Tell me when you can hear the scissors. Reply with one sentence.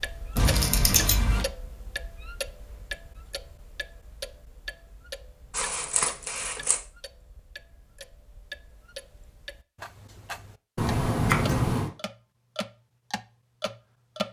You can hear the scissors from 0.3 to 1.4 s, from 5.5 to 6.8 s and from 10.8 to 11.9 s.